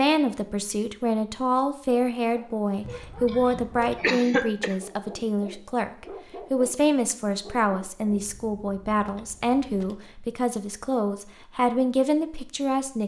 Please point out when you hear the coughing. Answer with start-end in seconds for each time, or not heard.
2.9-4.8.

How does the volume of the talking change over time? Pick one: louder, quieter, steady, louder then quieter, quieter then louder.
steady.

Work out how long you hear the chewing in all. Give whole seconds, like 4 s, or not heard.
not heard.